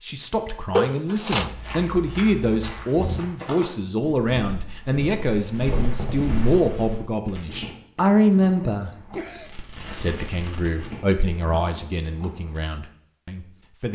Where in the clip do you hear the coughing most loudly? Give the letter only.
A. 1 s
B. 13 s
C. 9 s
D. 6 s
A.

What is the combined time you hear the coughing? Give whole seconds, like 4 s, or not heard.
2 s.